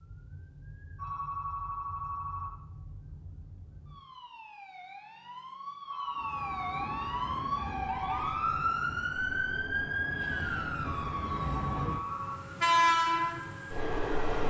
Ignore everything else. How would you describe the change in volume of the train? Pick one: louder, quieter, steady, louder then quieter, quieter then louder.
louder.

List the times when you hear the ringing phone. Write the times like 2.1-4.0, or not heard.
0.9-2.5, 5.8-7.2, 10.8-12.3.